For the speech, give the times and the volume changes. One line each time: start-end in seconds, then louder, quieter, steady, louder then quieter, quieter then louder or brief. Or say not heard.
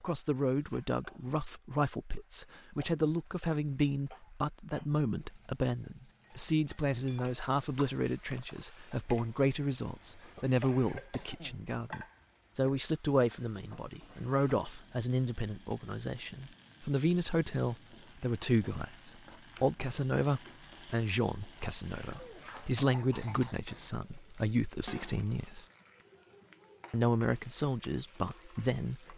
0.0-25.6 steady
26.9-29.1 brief.